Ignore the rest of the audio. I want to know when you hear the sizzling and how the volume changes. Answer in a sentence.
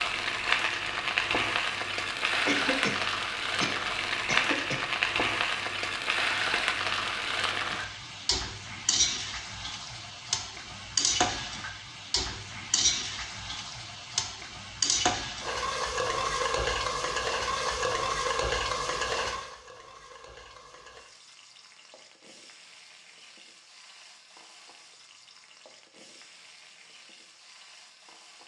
The sizzling can be heard from 0.0 to 28.4 s, getting quieter.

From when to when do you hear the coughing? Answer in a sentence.
The coughing can be heard from 2.5 to 4.8 s.